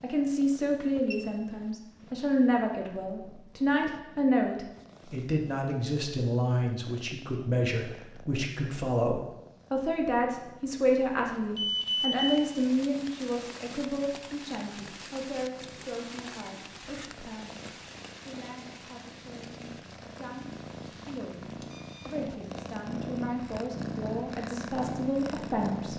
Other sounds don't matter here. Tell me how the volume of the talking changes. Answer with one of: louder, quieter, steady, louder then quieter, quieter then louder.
quieter then louder.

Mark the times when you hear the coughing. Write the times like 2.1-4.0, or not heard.
not heard.